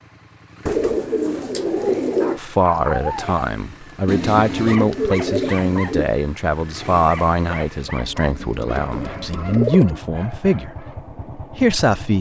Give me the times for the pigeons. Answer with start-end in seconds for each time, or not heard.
0.7-2.4, 4.0-6.1, 8.2-10.0.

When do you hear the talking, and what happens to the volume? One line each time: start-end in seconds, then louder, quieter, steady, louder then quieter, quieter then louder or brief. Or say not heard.
2.4-12.1 steady.